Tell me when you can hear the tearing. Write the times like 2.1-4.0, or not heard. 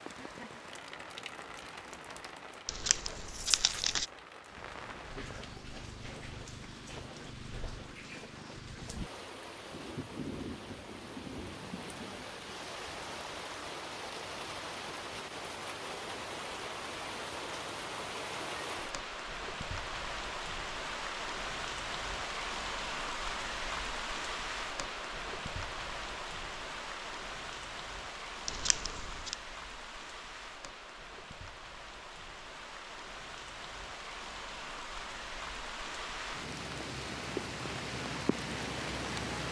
2.6-4.0, 28.4-29.4.